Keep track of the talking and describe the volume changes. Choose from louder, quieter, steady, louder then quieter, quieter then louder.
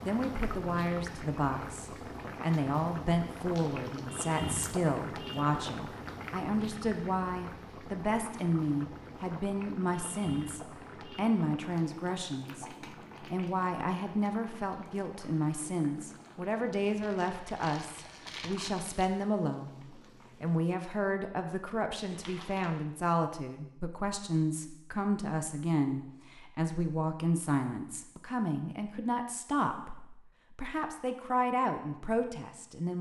steady.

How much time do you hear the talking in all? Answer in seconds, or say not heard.
33 s.